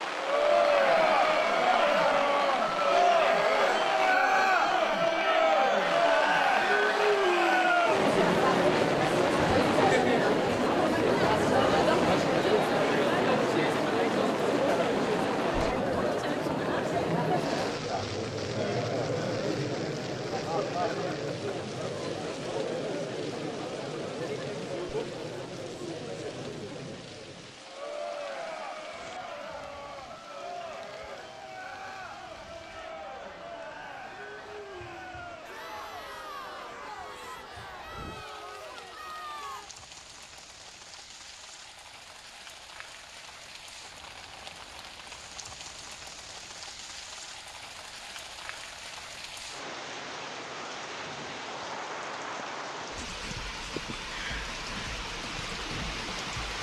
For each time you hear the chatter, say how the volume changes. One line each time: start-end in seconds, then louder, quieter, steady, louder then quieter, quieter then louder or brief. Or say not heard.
0.1-39.7 quieter.